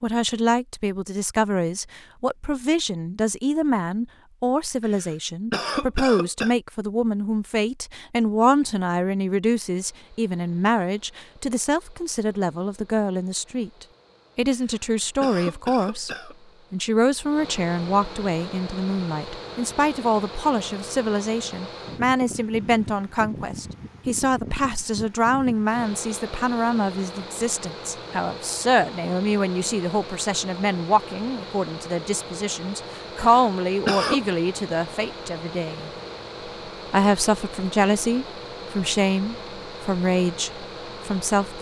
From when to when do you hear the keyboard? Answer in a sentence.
You can't hear the keyboard here.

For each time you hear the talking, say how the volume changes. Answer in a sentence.
You can hear the talking from 0.0 to 35.9 s, at a steady volume; and from 36.9 to 41.5 s, getting quieter.